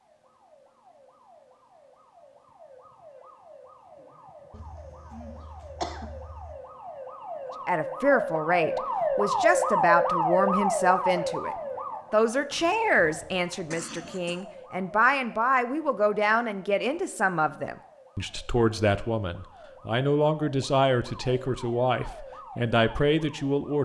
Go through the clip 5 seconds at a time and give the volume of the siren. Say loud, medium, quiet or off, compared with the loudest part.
quiet, loud, loud, quiet, quiet.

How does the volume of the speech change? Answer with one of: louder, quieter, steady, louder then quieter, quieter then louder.
steady.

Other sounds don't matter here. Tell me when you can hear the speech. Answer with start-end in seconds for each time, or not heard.
7.7-23.8.